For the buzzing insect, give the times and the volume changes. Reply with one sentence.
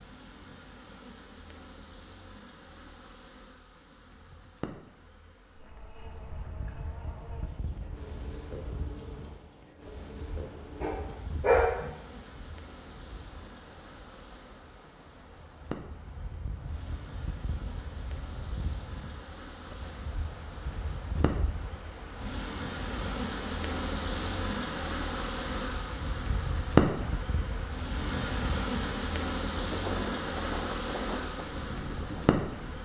The buzzing insect can be heard from 0.0 to 32.8 s, getting louder.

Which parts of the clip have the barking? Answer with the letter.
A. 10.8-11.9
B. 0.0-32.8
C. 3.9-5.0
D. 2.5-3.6
A.